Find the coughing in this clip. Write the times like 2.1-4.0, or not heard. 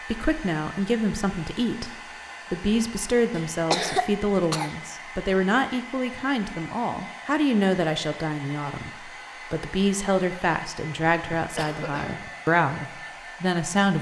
3.4-4.8, 11.1-12.3.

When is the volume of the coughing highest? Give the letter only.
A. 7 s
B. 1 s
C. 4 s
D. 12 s
C.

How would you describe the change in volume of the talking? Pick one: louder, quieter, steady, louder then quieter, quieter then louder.
steady.